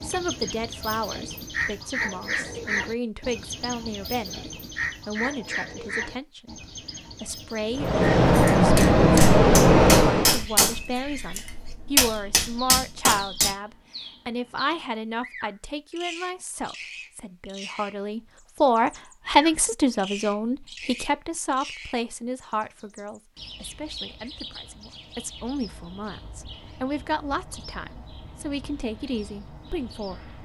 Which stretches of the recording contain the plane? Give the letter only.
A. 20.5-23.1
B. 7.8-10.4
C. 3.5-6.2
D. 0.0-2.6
B.